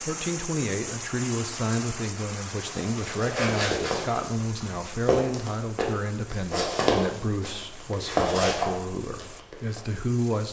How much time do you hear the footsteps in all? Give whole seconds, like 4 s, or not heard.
7 s.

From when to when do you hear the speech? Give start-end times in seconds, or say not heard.
0.0-10.4.